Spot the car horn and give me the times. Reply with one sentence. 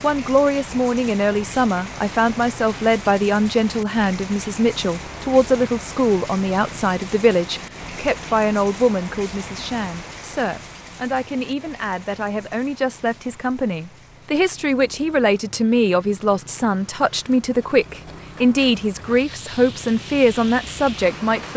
The car horn can't be heard in this clip.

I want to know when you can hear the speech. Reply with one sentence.
The speech can be heard from 0.0 to 21.5 s.